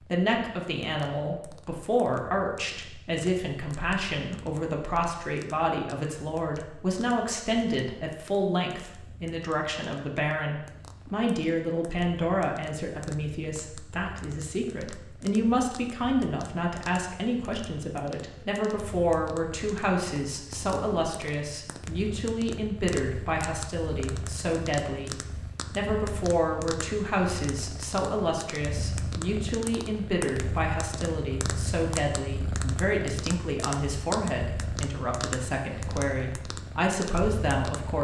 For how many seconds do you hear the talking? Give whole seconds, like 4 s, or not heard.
38 s.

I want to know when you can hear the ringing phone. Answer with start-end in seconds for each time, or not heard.
not heard.